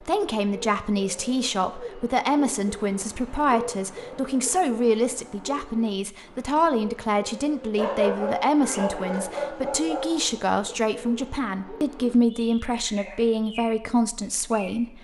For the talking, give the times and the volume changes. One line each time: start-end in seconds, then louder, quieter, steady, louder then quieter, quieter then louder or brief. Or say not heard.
0.1-14.9 steady.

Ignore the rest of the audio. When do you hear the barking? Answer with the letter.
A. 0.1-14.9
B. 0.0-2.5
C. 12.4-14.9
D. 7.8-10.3
D.